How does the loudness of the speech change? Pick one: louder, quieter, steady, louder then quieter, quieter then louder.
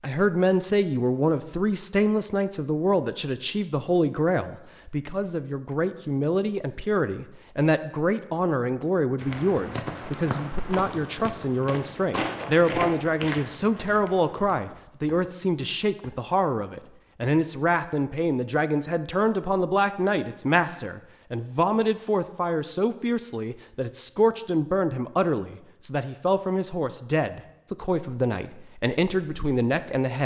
steady.